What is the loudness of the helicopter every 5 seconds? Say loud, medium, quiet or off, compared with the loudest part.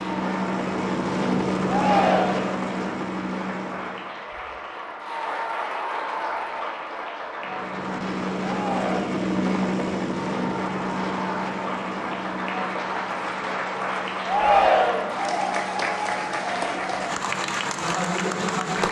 loud, loud, medium, quiet.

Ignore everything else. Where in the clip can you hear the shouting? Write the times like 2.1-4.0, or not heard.
1.6-2.5, 8.4-9.1, 14.2-15.2.